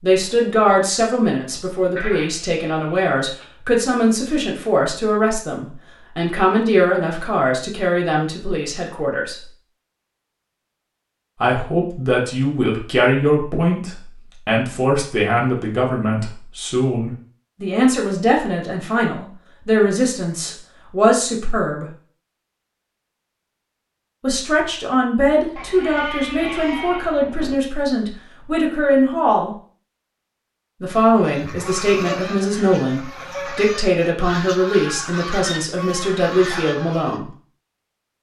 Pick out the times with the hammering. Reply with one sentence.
The hammering can't be heard in this clip.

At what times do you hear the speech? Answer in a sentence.
You can hear the speech from 0.0 to 9.3 s, from 11.4 to 21.9 s, from 24.2 to 29.6 s and from 30.8 to 37.3 s.